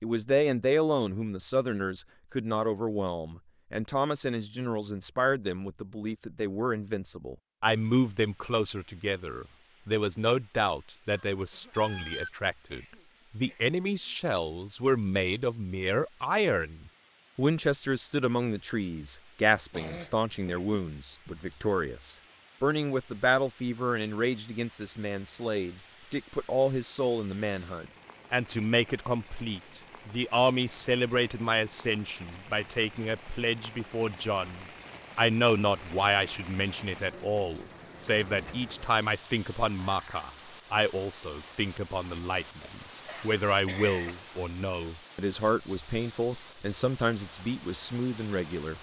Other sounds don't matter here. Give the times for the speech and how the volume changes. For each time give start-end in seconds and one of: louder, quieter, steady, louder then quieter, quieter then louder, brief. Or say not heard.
0.0-48.7 steady.